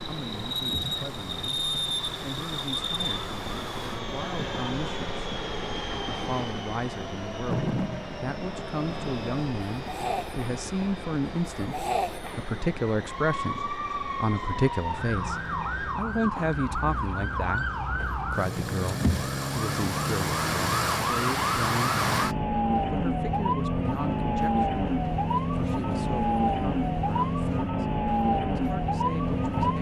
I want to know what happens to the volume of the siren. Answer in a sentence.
The volume of the siren goes up.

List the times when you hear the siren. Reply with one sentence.
You can hear the siren from 0.0 to 29.7 s.